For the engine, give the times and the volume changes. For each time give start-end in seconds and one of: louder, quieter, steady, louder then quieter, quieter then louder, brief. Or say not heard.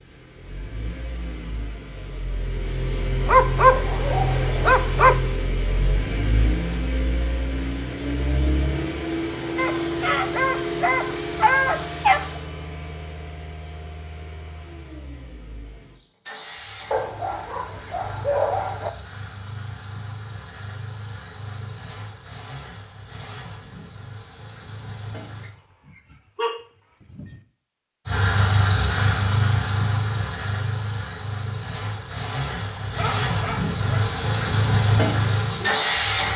0.0-25.6 quieter
28.1-36.3 quieter then louder.